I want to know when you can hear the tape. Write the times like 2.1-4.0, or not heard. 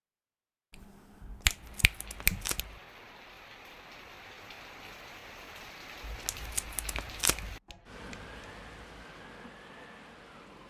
1.2-2.8, 6.0-7.6.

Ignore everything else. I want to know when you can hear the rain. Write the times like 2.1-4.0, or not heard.
1.5-10.6.